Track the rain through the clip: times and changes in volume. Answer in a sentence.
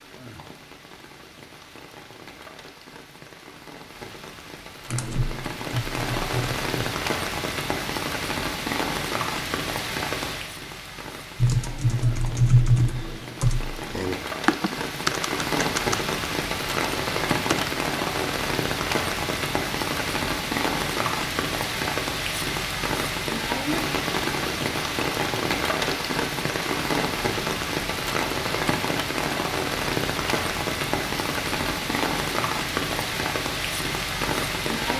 You can hear the rain from 0.0 to 34.9 s, getting louder.